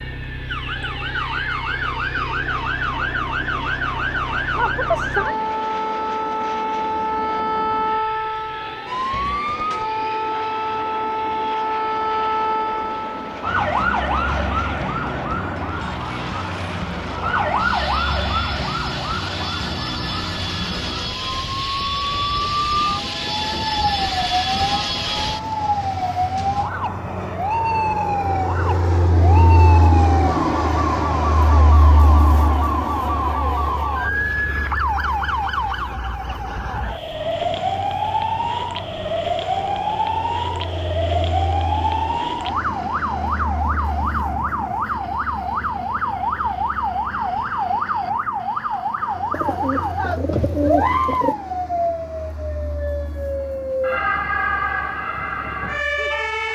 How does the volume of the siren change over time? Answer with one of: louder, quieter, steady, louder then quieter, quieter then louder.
steady.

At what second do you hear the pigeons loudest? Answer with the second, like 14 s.
51 s.